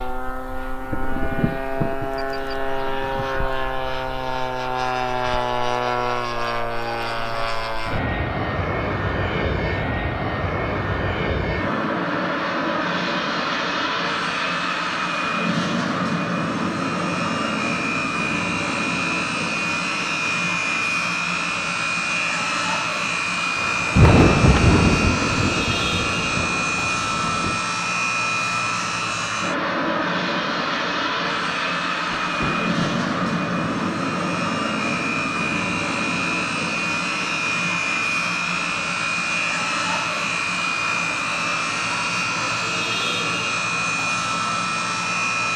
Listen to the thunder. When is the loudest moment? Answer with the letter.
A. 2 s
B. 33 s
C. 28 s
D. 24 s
D.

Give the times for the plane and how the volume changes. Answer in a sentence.
The plane can be heard from 0.0 to 45.5 s, at a steady volume.